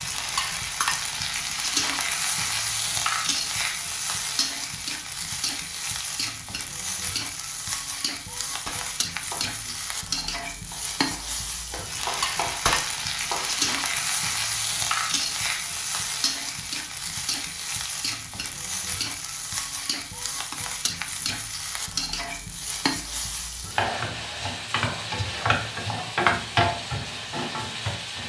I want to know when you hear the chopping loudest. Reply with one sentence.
The volume of the chopping peaks at 13 seconds.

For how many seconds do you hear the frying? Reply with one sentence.
The frying can be heard for 28 seconds in total.